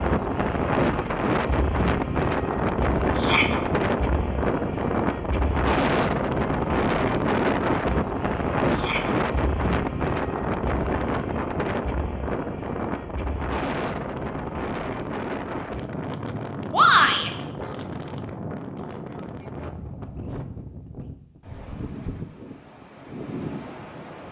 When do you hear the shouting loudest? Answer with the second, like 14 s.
17 s.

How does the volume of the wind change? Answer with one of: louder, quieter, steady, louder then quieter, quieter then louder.
quieter.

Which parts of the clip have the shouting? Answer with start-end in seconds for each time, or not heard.
3.1-3.6, 8.7-9.2, 16.7-17.3.